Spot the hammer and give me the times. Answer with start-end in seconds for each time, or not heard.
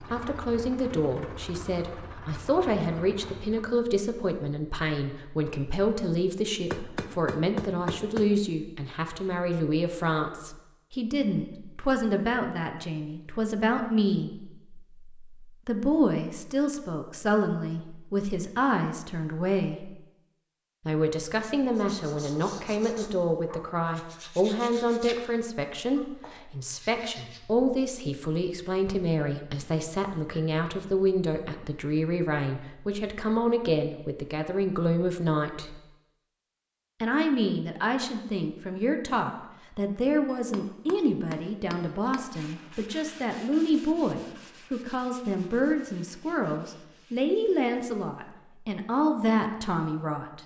6.7-8.3, 40.2-42.3.